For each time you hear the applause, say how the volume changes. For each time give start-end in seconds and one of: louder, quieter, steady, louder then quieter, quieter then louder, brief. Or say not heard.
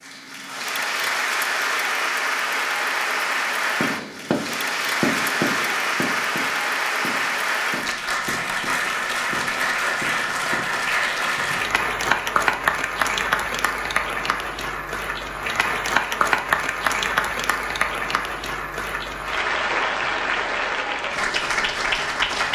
0.0-22.5 steady.